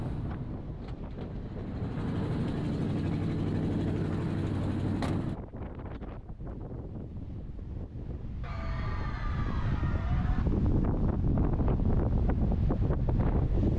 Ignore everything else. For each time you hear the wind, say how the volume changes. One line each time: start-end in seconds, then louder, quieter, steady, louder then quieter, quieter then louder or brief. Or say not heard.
0.0-13.7 louder.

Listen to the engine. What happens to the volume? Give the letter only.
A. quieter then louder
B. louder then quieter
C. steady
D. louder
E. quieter
D.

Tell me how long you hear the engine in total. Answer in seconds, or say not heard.
5 s.